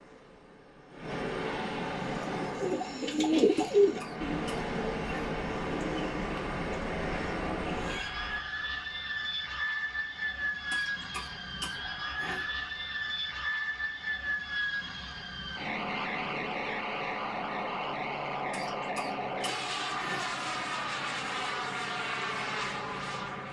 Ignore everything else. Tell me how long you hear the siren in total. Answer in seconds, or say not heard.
not heard.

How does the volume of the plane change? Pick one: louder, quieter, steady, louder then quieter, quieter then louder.
steady.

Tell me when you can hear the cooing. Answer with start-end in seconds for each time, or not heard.
2.0-8.4.